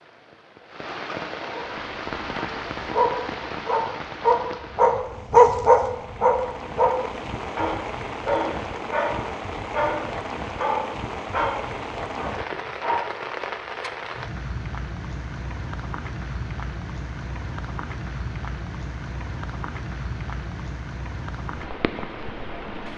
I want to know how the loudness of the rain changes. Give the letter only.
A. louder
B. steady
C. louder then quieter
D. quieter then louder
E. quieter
B.